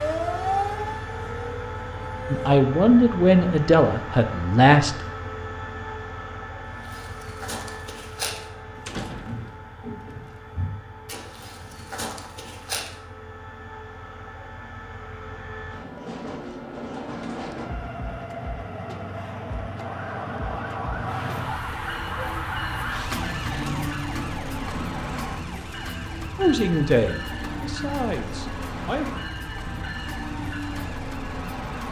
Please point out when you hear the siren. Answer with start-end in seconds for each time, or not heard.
0.0-2.6, 19.8-31.8.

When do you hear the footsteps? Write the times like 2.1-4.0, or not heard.
6.8-12.9.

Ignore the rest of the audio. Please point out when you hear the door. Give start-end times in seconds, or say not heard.
8.8-9.6.